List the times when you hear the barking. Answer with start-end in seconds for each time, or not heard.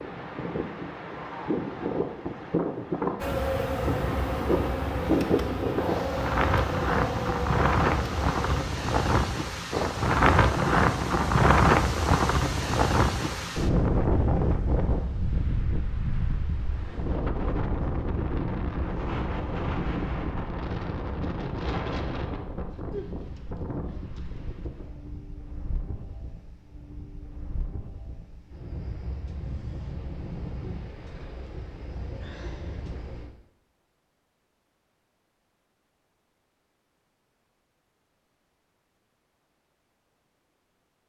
not heard.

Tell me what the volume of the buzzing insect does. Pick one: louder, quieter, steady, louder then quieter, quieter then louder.
steady.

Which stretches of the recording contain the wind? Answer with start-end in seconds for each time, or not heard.
0.0-33.3.